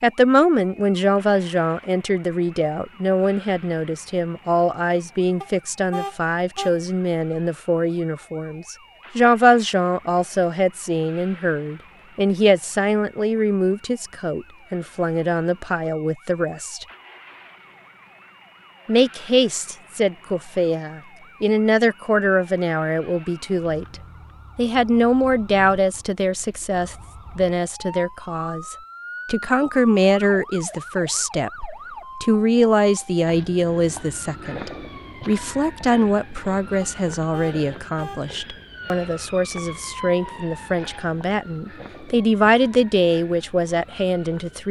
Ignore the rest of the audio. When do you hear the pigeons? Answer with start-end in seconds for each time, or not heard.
not heard.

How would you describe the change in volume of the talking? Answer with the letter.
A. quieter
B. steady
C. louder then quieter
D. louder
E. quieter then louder
B.